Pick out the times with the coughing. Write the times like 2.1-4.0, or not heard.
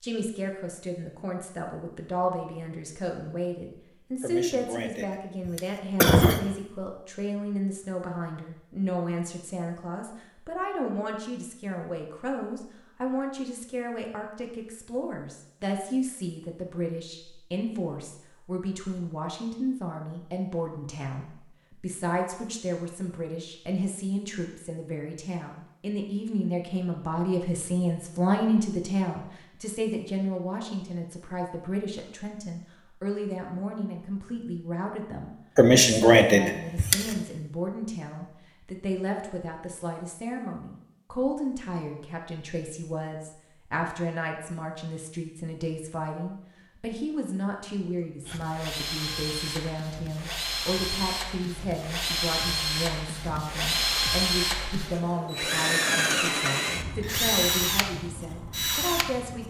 4.2-6.4, 35.5-37.1.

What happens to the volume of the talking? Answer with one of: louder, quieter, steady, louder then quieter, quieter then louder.
steady.